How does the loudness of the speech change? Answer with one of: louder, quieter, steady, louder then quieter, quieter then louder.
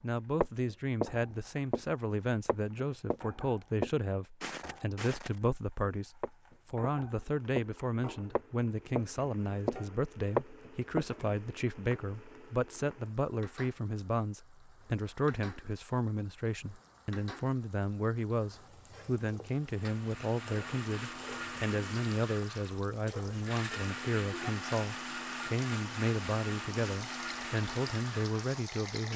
steady.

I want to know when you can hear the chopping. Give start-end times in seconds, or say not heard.
not heard.